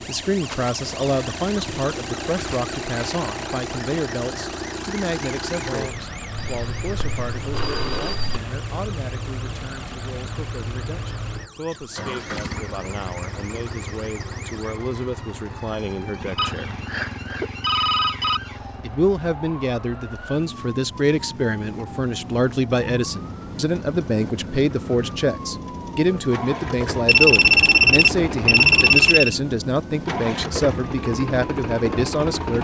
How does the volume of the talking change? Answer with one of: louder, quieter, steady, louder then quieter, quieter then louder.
quieter then louder.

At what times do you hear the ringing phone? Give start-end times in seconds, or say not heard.
6.3-8.4, 16.4-18.4, 27.1-29.4.